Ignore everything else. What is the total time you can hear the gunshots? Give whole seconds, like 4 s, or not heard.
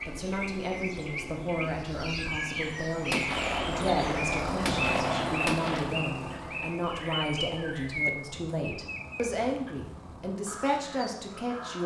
3 s.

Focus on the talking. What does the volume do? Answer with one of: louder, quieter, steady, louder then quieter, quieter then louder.
steady.